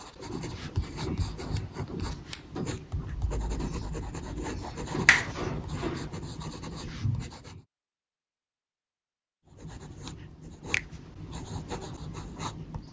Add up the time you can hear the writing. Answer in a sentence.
You can hear the writing for 11 seconds altogether.